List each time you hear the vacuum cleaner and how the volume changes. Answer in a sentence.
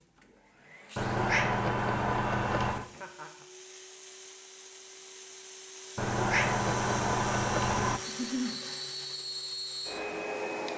The vacuum cleaner can be heard from 0.0 to 10.7 s, getting louder.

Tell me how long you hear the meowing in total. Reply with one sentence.
The meowing can be heard for 4 seconds in total.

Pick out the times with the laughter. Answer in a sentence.
You can hear the laughter from 2.8 to 3.5 s and from 8.1 to 8.6 s.